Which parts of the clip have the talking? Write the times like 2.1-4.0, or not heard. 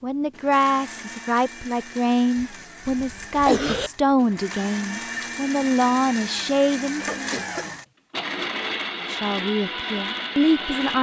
0.0-7.3, 9.1-10.9.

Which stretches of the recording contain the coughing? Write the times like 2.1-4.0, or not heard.
2.4-3.9, 7.0-7.8.